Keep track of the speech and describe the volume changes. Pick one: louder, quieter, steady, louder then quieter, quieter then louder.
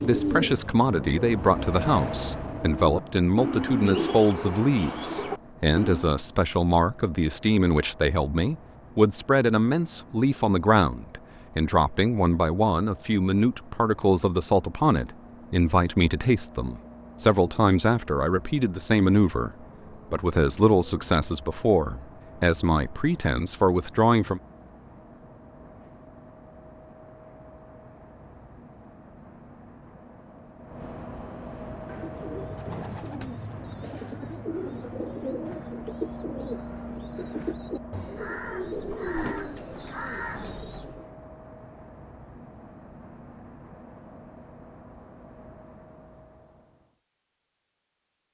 steady.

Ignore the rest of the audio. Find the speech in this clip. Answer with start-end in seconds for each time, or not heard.
0.0-24.4.